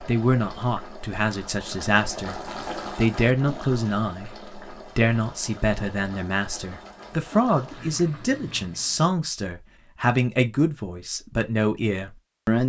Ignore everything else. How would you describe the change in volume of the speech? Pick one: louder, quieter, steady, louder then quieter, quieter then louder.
steady.